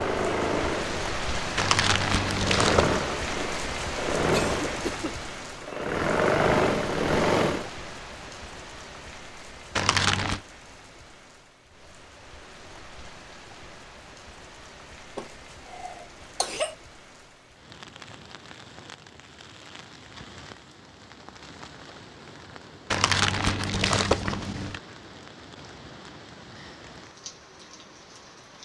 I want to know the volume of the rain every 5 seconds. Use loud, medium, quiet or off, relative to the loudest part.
loud, medium, quiet, quiet, quiet, quiet.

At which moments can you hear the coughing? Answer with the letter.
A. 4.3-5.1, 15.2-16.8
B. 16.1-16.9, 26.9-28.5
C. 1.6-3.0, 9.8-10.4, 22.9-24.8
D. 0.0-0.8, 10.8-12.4
A.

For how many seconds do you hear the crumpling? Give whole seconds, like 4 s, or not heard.
4 s.